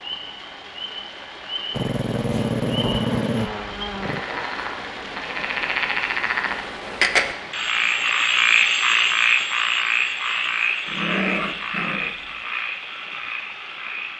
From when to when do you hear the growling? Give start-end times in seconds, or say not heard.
1.7-4.2, 10.8-12.3.